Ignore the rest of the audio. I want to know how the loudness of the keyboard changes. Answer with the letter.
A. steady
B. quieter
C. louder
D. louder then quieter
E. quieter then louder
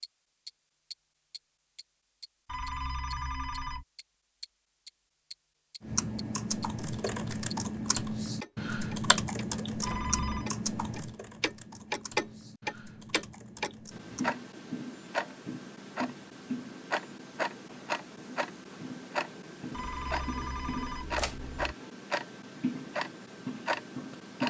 B.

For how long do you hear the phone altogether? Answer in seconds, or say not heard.
4 s.